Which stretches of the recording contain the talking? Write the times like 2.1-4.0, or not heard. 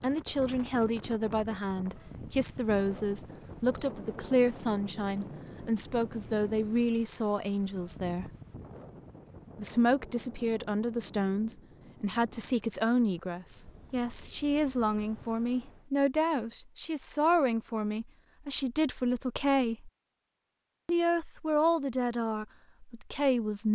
0.0-8.2, 9.6-19.9, 20.9-23.6.